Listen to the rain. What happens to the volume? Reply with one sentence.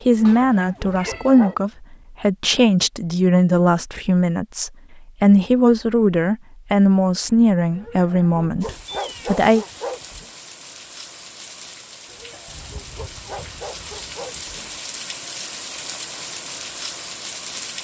The volume of the rain goes up.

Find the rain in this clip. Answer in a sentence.
The rain can be heard from 8.6 to 17.7 s.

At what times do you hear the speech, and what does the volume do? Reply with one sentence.
You can hear the speech from 0.0 to 9.7 s, at a steady volume.